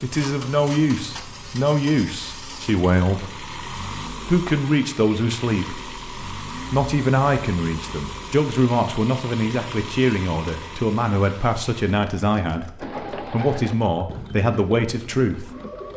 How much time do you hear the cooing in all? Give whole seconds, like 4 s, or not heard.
3 s.